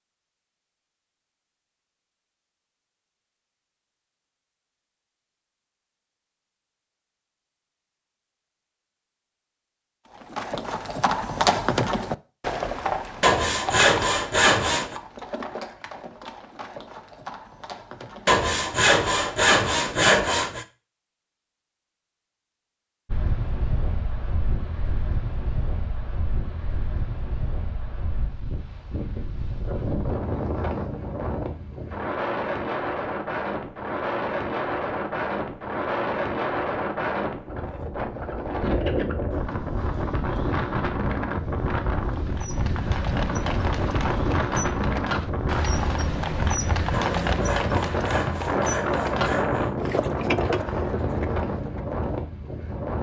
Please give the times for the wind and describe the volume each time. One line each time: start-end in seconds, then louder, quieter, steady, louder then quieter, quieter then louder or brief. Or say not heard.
23.1-52.9 louder.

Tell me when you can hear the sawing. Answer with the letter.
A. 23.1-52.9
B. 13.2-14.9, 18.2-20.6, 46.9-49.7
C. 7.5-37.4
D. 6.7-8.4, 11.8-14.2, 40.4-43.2
B.